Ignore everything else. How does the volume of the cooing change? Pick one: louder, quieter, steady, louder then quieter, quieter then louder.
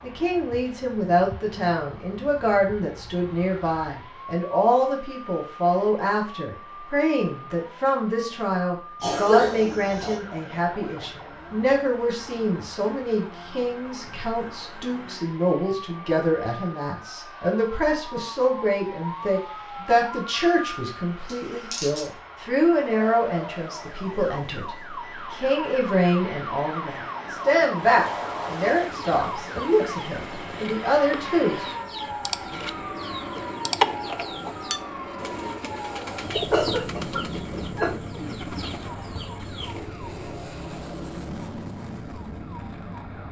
louder then quieter.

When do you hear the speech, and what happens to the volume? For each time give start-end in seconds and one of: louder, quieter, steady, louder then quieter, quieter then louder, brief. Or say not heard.
0.0-31.8 steady.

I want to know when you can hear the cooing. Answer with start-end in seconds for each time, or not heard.
27.9-39.9.